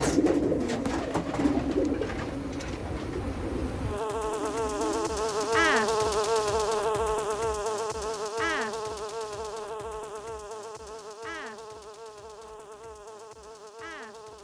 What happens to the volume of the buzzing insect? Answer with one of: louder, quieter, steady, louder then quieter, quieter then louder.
louder then quieter.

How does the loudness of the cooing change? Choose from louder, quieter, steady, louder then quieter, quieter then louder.
quieter.